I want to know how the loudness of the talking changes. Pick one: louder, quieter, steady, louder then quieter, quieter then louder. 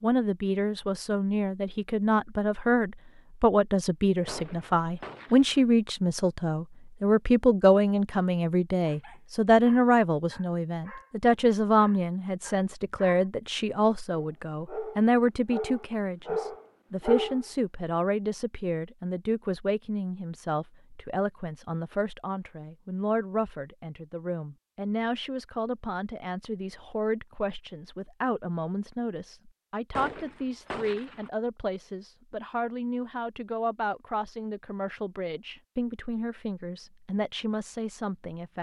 quieter.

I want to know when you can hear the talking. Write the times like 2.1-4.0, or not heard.
0.0-38.5.